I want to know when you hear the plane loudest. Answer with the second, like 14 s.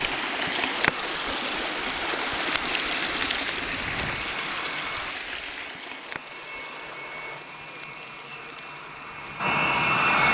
10 s.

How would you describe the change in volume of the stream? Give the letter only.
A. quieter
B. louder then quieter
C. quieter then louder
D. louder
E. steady
A.